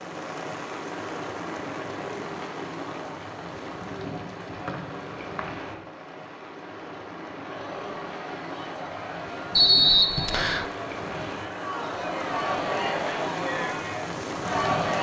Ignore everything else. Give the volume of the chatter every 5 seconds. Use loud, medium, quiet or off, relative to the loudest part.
off, medium, loud.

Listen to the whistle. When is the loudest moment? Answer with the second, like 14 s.
10 s.